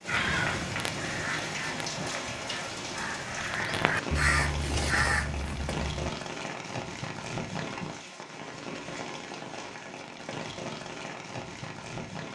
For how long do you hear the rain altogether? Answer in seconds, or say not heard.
12 s.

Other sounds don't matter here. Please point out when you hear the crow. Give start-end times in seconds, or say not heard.
0.1-6.1.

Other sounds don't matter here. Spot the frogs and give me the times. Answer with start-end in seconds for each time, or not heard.
not heard.